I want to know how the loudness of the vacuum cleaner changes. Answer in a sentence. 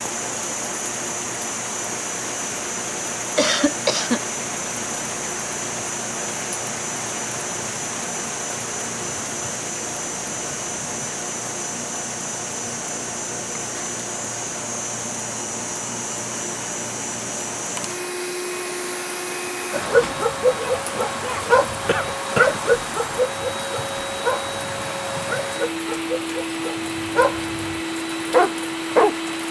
The volume of the vacuum cleaner stays about the same.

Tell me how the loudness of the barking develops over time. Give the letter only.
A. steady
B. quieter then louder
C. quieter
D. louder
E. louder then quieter
B.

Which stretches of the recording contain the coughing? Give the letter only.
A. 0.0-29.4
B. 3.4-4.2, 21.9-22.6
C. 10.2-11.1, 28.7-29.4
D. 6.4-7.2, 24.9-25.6
B.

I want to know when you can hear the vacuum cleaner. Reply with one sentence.
You can hear the vacuum cleaner from 0.0 to 29.4 s.